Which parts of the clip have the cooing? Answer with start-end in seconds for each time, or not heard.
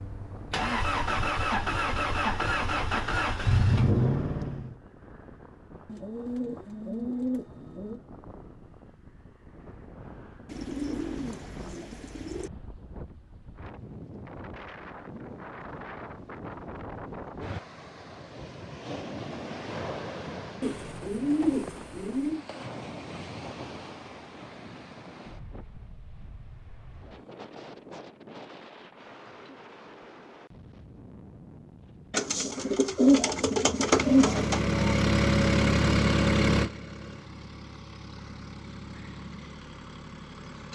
5.8-8.0, 10.4-12.5, 20.6-22.4, 32.1-34.6.